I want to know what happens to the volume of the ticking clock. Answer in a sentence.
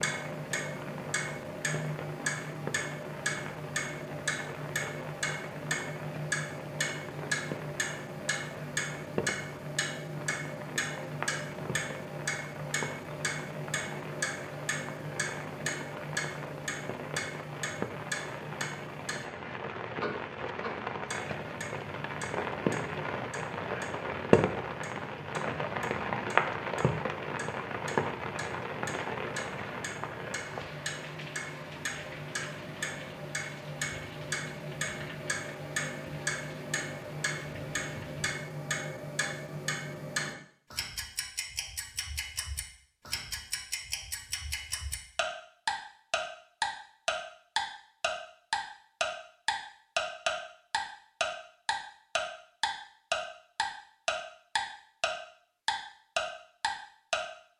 The loudness of the ticking clock goes down, then up.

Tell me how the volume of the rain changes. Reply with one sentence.
The loudness of the rain goes up, then down.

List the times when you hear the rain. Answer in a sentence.
The rain can be heard from 0.0 to 38.4 s.